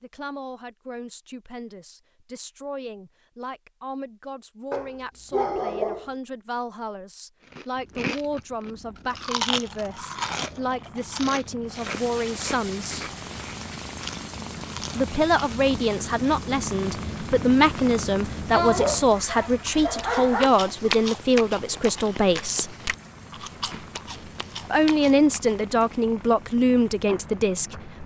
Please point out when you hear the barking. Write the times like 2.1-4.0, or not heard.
4.7-6.1, 18.5-20.5.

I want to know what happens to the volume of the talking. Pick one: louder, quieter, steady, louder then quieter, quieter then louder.
louder.